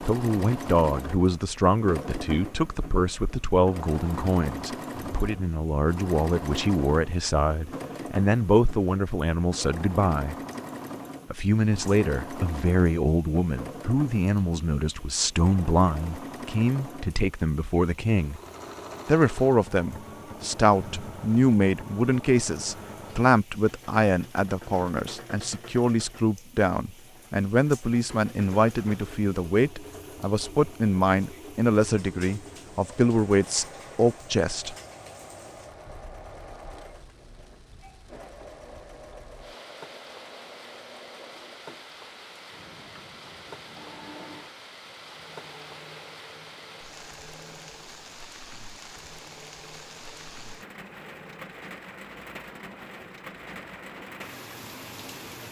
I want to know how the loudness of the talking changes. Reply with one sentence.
The volume of the talking stays about the same.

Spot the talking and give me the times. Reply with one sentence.
The talking can be heard from 0.0 to 10.3 s, from 11.3 to 18.4 s and from 19.1 to 34.8 s.